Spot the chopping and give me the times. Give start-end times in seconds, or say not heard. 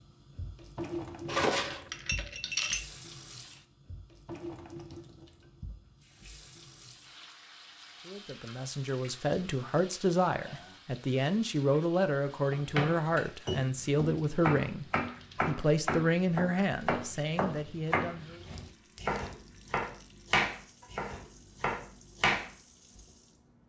12.5-22.5.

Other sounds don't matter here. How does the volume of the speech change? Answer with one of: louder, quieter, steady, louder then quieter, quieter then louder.
steady.